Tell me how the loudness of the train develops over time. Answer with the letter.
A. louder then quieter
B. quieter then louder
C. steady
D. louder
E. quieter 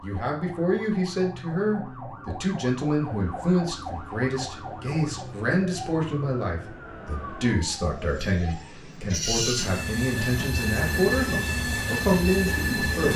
D.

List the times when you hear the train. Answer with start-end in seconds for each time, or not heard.
2.9-13.1.